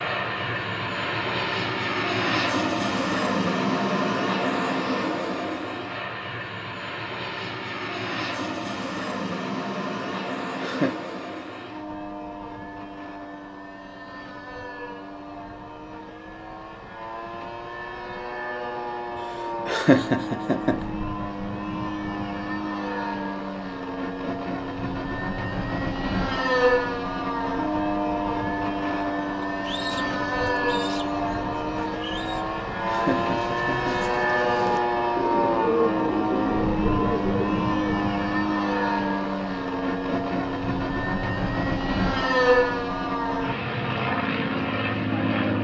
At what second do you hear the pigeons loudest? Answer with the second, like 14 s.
36 s.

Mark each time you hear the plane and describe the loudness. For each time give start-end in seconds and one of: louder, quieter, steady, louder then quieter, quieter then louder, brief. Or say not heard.
0.0-45.5 quieter then louder.